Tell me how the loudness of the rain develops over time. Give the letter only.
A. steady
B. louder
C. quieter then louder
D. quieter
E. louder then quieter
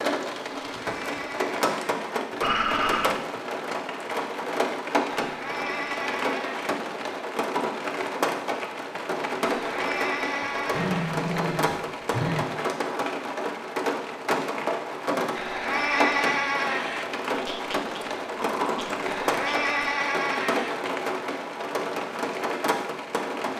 A.